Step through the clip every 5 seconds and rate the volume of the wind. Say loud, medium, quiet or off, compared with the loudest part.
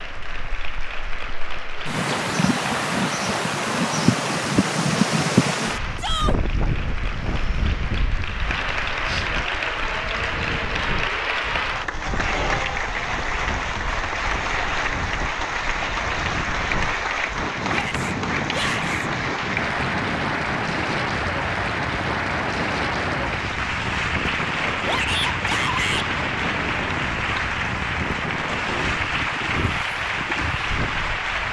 loud, loud, quiet, medium, medium, medium, medium.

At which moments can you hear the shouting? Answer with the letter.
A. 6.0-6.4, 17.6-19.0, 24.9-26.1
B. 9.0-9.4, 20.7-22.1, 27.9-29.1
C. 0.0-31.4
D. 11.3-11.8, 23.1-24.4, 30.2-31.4
A.